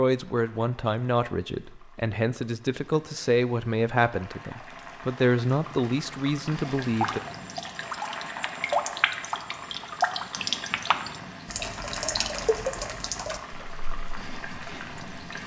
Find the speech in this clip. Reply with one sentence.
You can hear the speech from 0.0 to 7.2 s.